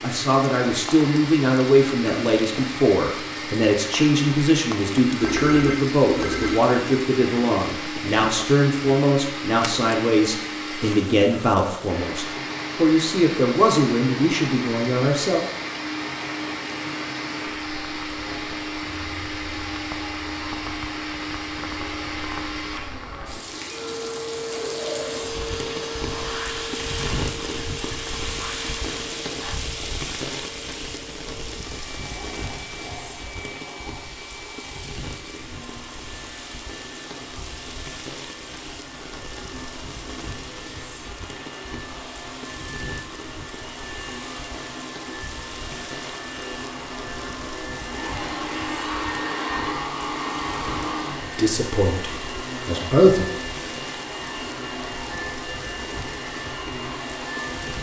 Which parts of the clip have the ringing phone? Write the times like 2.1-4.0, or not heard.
5.2-6.5.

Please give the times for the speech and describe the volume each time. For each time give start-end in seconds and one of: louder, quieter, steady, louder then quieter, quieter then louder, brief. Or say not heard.
0.0-15.4 steady
51.4-53.3 brief.